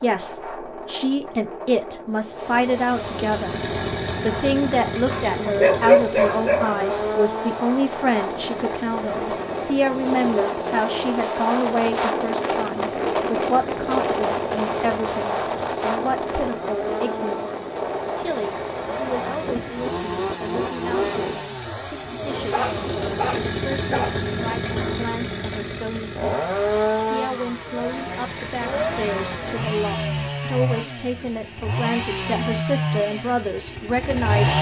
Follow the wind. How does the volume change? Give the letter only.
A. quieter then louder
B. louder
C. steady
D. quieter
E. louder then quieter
E.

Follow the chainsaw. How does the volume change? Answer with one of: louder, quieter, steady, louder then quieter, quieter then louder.
quieter then louder.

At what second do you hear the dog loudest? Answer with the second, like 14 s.
6 s.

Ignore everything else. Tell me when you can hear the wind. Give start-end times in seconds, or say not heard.
0.0-25.1.